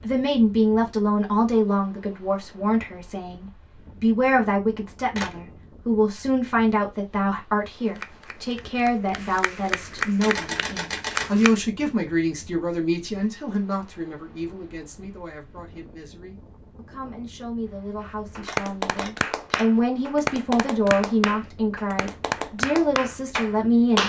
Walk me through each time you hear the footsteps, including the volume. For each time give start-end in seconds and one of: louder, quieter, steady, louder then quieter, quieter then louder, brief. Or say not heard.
not heard.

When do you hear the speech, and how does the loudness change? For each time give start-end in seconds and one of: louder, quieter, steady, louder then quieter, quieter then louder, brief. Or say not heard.
0.0-24.0 quieter then louder.